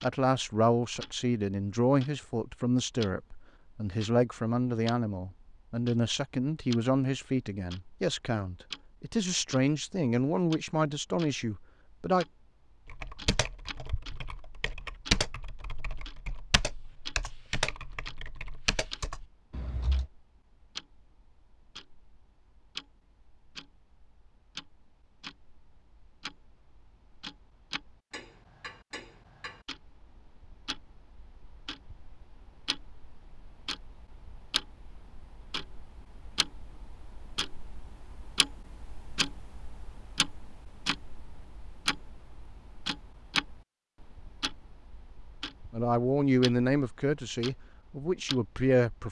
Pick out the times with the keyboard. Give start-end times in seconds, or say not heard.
12.8-20.1.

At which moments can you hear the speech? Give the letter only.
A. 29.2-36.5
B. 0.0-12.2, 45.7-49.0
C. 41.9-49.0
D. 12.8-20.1
B.